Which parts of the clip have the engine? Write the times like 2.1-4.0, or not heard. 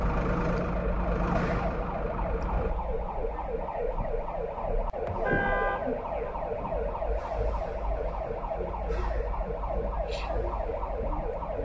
0.0-2.8.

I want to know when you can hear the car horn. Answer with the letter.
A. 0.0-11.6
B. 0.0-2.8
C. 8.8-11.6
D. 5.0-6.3
D.